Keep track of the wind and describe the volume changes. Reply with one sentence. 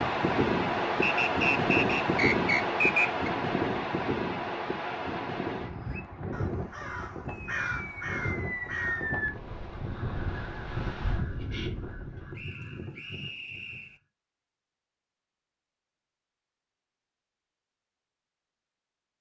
The loudness of the wind goes down.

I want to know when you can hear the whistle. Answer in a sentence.
You can hear the whistle from 1.0 to 3.3 s and from 12.3 to 14.0 s.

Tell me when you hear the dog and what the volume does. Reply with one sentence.
You can't hear the dog here.